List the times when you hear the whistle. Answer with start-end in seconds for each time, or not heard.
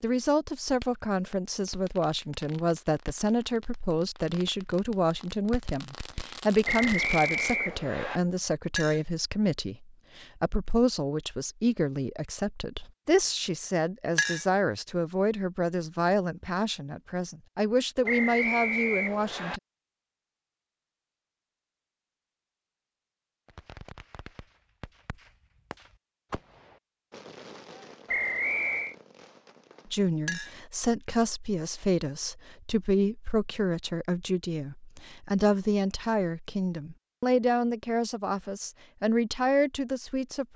6.7-8.2, 18.1-19.6, 28.1-28.9.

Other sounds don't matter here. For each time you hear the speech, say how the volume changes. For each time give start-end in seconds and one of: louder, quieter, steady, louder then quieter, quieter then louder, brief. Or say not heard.
0.0-19.6 steady
29.9-40.5 steady.